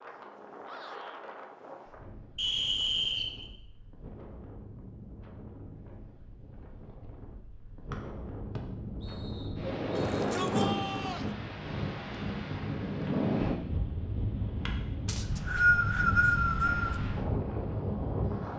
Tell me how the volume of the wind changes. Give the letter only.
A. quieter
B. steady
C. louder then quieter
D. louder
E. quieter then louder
D.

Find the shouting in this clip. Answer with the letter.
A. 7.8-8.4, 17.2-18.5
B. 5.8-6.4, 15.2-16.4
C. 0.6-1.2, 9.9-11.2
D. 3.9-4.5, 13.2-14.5
C.